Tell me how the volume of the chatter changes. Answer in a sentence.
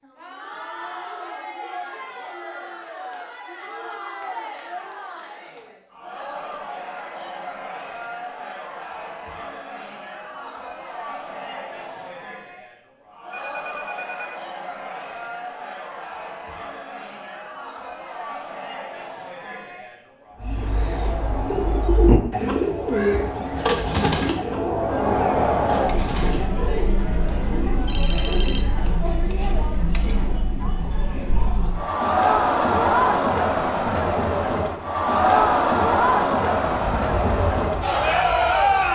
The loudness of the chatter goes up.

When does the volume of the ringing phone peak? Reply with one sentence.
The volume of the ringing phone peaks at 28 seconds.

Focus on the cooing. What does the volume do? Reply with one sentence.
The loudness of the cooing goes down.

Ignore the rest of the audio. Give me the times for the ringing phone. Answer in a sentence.
The ringing phone can be heard from 13.3 to 14.4 s and from 27.9 to 28.9 s.